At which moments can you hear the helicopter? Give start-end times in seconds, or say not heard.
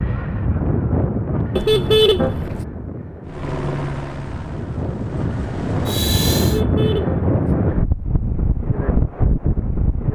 3.2-6.6.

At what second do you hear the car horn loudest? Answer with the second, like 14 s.
2 s.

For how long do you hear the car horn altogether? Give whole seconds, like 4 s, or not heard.
2 s.